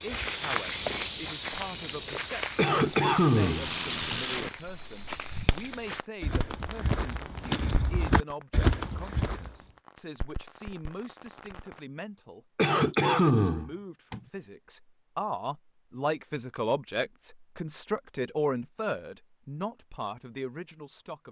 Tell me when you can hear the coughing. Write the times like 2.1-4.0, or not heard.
2.5-4.2, 12.6-14.2.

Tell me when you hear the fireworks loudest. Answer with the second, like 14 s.
4 s.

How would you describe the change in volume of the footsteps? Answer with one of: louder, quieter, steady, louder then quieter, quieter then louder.
quieter then louder.